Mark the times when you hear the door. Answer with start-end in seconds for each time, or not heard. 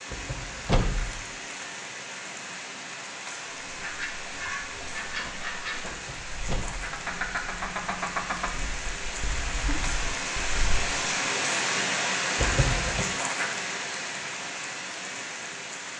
0.1-1.2, 5.9-7.0, 12.3-13.1.